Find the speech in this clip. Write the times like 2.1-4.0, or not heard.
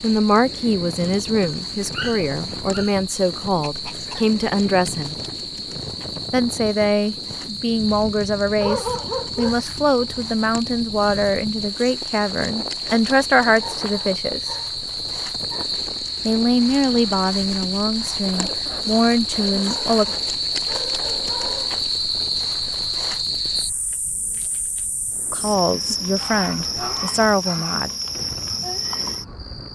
0.0-5.2, 6.3-14.6, 16.2-20.1, 25.3-27.9.